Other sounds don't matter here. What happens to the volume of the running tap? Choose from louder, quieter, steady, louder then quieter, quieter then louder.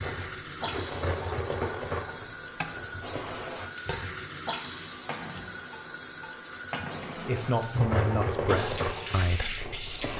steady.